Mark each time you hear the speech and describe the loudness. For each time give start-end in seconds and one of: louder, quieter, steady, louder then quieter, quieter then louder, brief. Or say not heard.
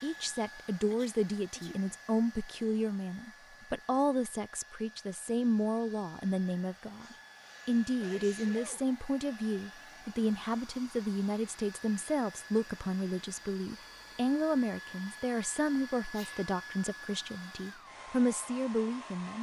0.0-19.3 steady.